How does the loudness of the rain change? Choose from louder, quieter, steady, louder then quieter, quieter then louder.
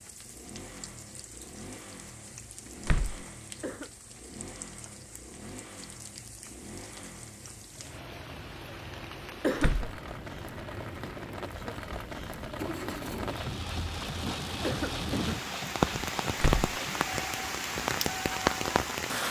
louder.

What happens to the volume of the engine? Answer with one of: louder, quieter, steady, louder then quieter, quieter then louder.
louder.